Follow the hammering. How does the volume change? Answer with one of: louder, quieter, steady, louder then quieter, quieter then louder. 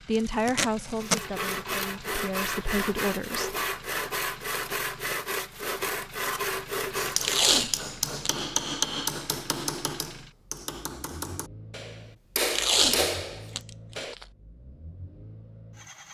quieter then louder.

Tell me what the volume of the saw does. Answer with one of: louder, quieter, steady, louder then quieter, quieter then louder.
steady.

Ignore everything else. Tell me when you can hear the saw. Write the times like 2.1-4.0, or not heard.
0.9-7.6.